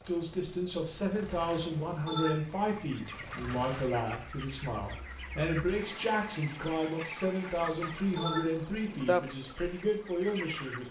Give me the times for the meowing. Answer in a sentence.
You can hear the meowing from 1.8 to 2.4 s and from 7.7 to 8.4 s.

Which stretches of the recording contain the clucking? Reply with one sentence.
The clucking can be heard from 2.4 to 10.8 s.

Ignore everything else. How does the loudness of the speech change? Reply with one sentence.
The loudness of the speech stays about the same.